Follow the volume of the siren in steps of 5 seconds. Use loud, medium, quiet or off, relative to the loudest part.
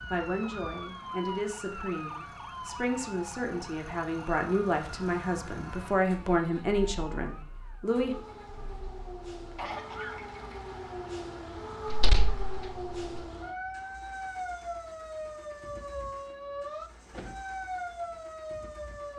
loud, medium, loud, loud.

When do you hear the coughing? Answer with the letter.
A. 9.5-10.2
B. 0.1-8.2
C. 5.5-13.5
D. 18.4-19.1
A.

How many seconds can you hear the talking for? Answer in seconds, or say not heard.
8 s.